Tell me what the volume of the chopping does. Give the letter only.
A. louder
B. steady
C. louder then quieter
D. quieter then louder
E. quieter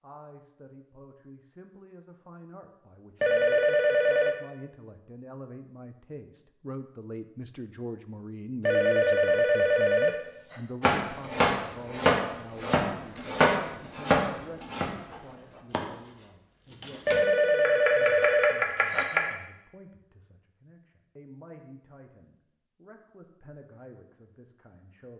D.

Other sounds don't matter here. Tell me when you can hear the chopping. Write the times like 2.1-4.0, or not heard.
10.8-19.4.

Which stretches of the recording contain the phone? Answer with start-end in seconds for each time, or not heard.
3.2-4.3, 8.7-10.6, 17.1-19.1.